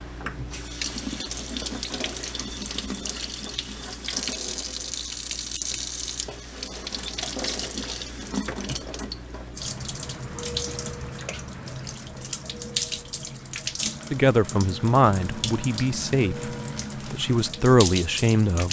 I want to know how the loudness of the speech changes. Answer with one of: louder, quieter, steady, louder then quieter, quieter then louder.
quieter then louder.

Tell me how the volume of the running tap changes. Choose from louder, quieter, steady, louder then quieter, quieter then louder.
steady.